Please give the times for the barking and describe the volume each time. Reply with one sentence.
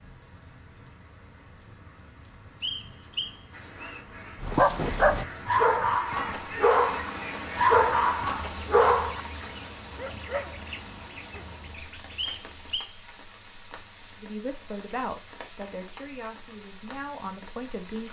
You can hear the barking from 4.4 to 11.8 s, getting quieter.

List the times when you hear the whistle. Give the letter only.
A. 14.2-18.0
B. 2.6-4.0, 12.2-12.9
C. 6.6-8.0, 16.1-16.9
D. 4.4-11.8
B.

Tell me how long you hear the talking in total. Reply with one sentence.
You can hear the talking for 4 seconds altogether.